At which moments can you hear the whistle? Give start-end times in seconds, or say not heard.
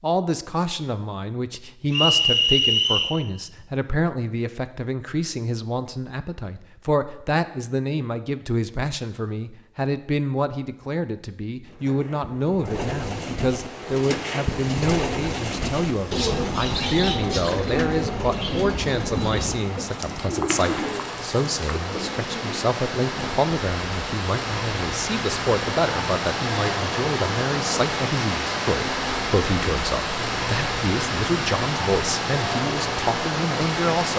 1.9-3.1.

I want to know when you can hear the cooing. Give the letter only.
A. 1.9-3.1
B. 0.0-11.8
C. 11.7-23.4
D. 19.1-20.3
C.